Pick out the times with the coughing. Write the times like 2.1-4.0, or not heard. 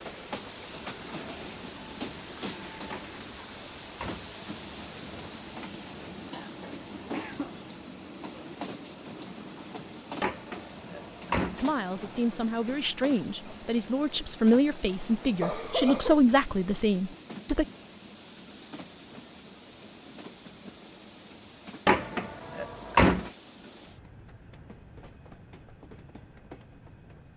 6.3-7.5, 15.4-16.2.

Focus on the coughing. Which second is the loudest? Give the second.
16 s.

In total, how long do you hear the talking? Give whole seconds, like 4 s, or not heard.
6 s.